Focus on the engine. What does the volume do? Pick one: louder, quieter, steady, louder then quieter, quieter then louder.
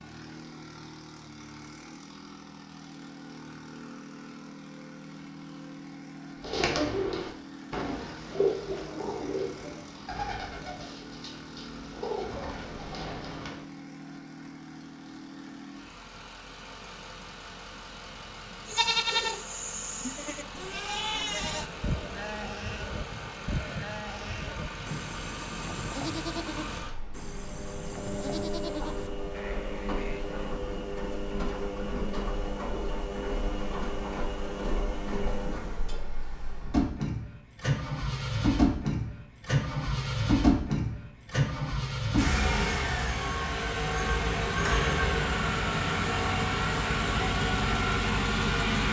louder.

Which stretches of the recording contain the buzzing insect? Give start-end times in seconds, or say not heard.
not heard.